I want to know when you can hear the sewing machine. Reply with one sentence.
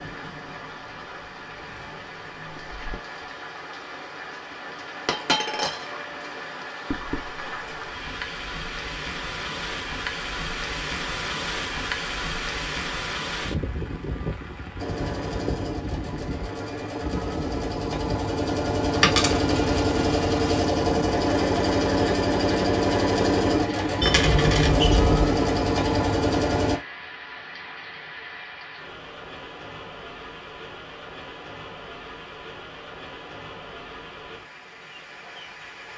You can hear the sewing machine from 14.8 to 26.8 s.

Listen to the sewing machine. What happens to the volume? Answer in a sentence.
The volume of the sewing machine goes up.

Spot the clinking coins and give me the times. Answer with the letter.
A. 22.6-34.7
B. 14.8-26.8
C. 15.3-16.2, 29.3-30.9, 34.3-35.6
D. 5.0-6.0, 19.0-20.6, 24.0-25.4
D.